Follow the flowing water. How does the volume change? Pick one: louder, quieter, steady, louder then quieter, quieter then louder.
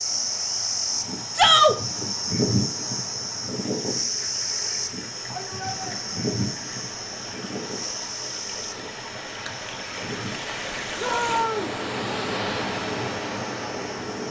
louder.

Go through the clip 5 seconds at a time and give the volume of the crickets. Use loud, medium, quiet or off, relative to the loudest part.
loud, medium, quiet.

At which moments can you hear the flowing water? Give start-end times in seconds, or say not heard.
0.0-14.2.